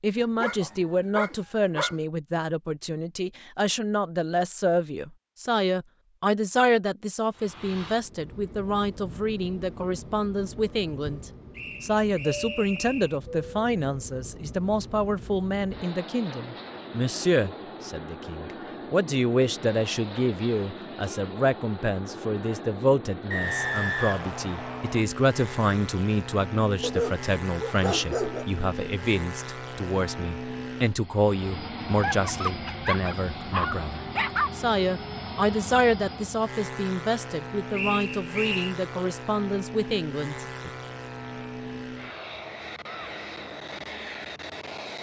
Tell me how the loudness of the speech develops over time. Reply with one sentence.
The loudness of the speech stays about the same.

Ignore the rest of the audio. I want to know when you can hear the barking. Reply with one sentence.
You can hear the barking from 0.2 to 1.9 s, from 26.8 to 28.4 s and from 31.9 to 34.5 s.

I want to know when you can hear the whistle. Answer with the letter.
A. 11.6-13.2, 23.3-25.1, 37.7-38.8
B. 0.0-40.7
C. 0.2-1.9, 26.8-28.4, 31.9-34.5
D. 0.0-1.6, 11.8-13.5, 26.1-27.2
A.